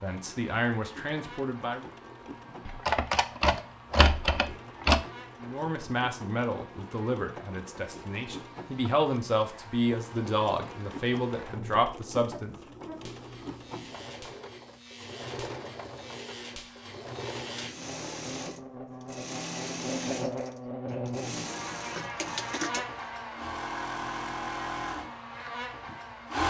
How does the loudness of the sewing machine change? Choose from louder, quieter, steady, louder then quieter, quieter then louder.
louder.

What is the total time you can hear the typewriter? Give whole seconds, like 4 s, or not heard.
2 s.